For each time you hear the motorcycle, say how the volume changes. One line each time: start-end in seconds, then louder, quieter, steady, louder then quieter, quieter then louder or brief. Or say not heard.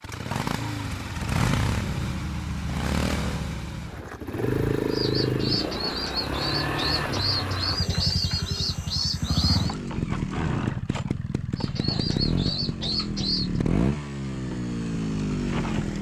0.0-15.9 steady.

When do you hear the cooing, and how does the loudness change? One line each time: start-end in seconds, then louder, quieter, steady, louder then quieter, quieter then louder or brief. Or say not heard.
4.9-9.8 steady
11.6-13.6 brief.